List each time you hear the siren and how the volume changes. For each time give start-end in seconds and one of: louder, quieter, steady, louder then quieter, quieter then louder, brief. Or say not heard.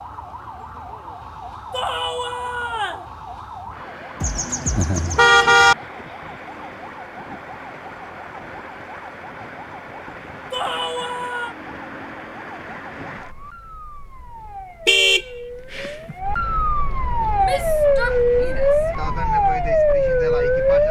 0.0-20.8 louder.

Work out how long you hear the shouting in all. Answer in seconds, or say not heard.
4 s.